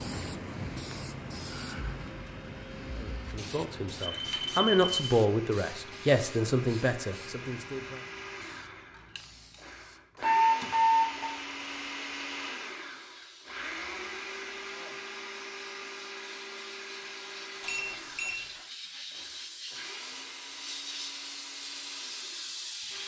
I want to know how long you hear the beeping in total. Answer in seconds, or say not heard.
3 s.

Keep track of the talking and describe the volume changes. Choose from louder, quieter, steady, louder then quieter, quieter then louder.
louder then quieter.